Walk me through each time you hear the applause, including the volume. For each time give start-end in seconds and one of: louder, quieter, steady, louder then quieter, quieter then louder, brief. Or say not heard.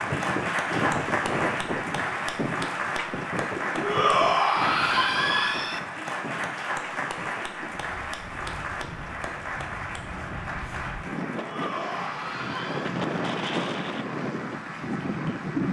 0.0-15.6 quieter.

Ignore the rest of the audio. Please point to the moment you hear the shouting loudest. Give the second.
4 s.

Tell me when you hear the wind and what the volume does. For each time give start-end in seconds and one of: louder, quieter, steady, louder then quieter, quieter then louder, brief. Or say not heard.
0.0-15.6 quieter then louder.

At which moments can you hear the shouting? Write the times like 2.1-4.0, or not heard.
3.8-5.8, 11.3-12.9.